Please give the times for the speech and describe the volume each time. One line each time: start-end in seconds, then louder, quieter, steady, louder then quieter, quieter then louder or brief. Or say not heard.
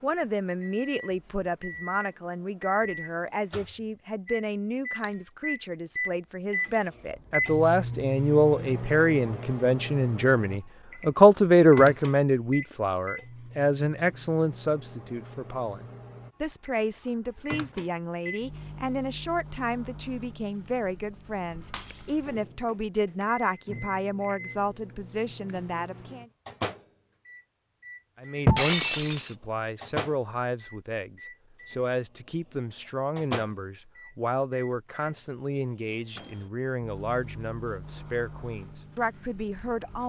0.0-26.2 louder then quieter
28.1-40.0 steady.